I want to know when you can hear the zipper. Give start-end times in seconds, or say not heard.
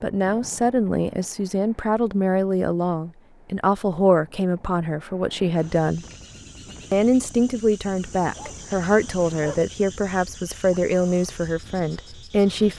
not heard.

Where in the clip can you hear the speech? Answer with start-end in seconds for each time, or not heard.
0.0-6.0, 6.9-12.7.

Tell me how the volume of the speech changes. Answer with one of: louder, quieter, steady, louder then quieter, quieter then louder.
steady.